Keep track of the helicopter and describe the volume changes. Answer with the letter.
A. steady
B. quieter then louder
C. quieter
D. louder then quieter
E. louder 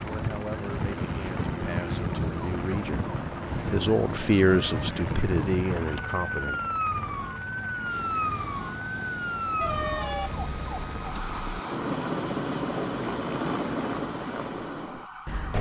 E.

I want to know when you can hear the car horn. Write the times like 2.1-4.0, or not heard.
4.5-5.0, 9.6-11.6.